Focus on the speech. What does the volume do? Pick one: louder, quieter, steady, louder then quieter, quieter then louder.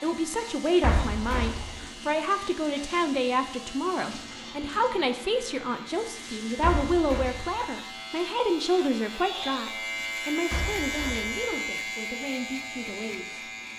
quieter.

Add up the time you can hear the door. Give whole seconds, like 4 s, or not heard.
3 s.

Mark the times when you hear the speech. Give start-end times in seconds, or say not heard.
0.0-13.6.